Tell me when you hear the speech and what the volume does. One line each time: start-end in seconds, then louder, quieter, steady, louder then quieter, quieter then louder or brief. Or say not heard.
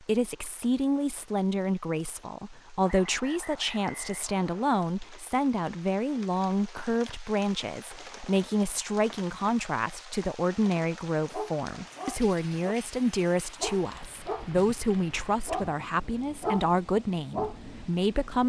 0.0-18.4 steady.